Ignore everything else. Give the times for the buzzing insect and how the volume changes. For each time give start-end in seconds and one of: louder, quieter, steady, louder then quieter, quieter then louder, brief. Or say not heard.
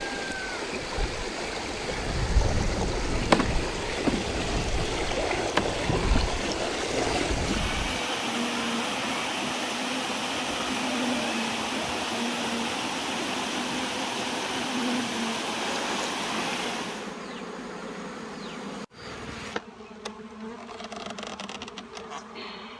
0.0-22.7 quieter.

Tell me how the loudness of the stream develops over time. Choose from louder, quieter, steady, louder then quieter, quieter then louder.
steady.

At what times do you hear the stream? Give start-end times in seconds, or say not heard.
0.0-17.2.